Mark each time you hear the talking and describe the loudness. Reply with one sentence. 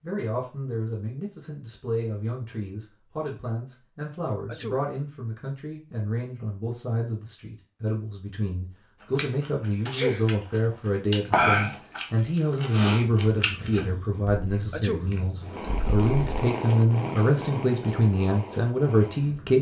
The talking can be heard from 0.0 to 19.5 s, getting louder.